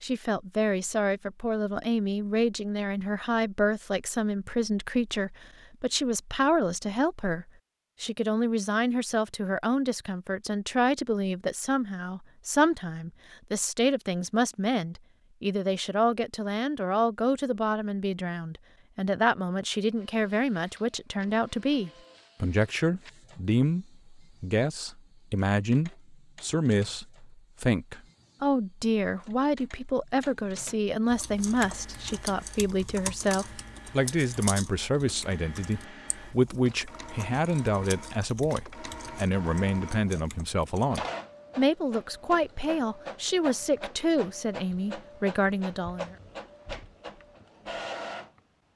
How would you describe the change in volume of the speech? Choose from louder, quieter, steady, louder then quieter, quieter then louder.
steady.